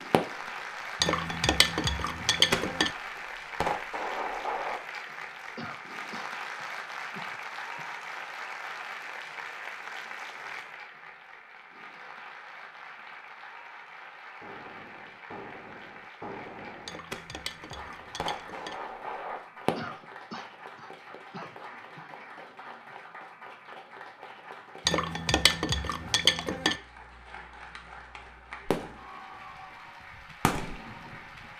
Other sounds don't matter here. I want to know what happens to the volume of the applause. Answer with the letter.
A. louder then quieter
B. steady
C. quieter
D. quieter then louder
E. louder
C.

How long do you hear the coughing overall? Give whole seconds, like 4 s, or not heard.
5 s.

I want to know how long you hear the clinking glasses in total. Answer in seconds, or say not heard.
6 s.